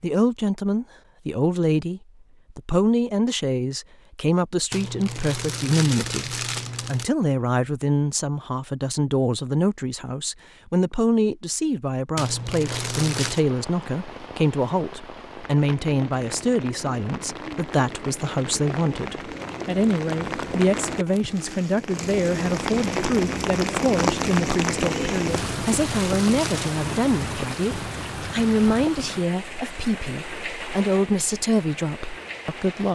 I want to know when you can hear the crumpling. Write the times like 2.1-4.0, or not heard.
4.7-7.1, 12.2-13.4, 25.4-26.7.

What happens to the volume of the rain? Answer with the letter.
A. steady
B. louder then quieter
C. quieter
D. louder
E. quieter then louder
B.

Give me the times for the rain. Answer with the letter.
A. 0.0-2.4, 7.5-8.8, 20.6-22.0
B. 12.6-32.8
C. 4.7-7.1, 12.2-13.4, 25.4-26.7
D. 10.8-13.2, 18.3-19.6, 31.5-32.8
B.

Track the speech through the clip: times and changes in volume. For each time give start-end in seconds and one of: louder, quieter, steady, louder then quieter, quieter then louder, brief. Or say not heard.
0.0-32.8 steady.